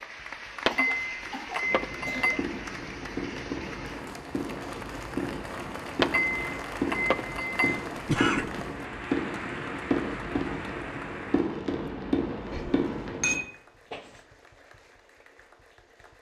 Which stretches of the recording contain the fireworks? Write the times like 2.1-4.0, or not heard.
1.6-13.4.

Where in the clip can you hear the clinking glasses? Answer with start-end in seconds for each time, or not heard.
0.7-2.4, 6.0-7.8, 13.2-14.2.